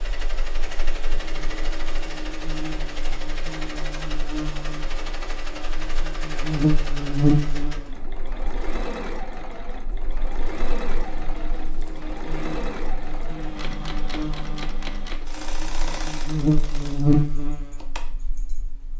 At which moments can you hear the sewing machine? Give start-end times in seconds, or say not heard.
0.0-18.9.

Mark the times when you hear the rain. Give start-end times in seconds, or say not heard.
not heard.